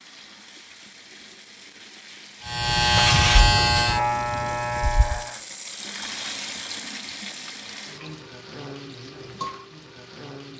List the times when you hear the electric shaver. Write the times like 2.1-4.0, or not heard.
2.5-5.4.